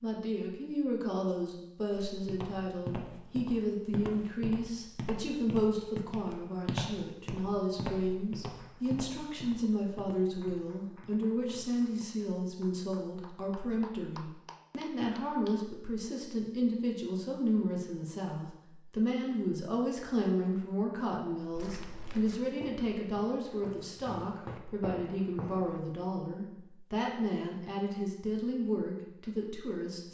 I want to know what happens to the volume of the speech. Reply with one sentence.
The loudness of the speech stays about the same.